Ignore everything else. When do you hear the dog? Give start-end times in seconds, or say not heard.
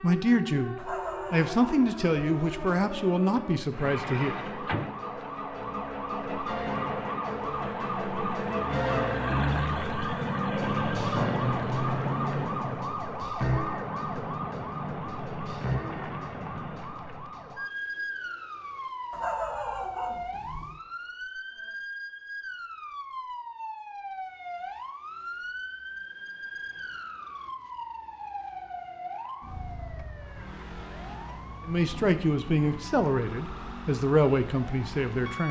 0.8-3.0, 19.1-20.8.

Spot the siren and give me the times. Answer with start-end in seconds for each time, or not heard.
0.0-35.4.